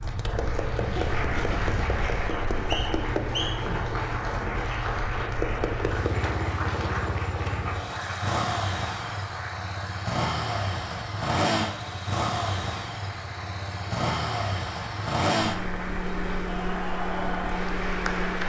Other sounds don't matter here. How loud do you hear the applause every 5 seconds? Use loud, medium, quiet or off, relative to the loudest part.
loud, loud, medium, loud.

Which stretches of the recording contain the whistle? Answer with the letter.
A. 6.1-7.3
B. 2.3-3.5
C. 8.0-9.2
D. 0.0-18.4
B.